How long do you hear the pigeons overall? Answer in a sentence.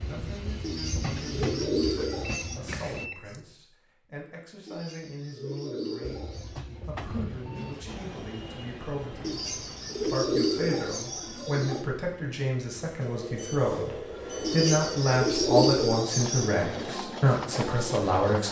You can hear the pigeons for 9 seconds altogether.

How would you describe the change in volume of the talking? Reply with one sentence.
The volume of the talking goes up.